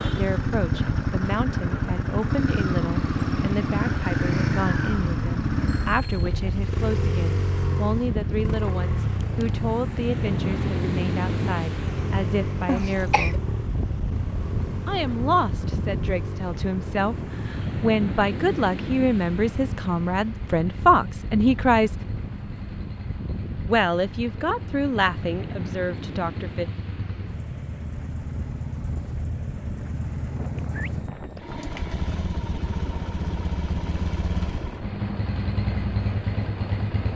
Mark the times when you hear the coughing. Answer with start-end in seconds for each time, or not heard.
12.7-13.4.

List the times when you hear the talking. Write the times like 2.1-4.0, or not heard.
0.0-13.4, 14.8-21.9, 23.6-26.7.